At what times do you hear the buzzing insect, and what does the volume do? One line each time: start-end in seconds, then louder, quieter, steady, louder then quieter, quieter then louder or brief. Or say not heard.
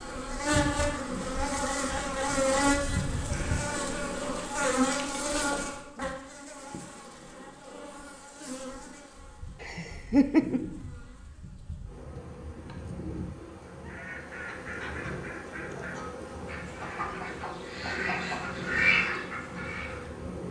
0.0-20.4 quieter.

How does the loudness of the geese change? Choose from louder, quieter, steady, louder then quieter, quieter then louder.
louder.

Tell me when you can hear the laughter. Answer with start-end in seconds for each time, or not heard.
9.6-10.6.